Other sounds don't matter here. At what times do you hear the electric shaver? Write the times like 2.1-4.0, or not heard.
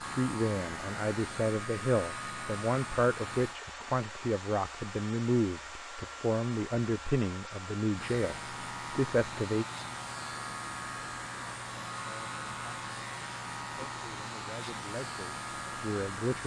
0.0-3.5, 8.0-16.4.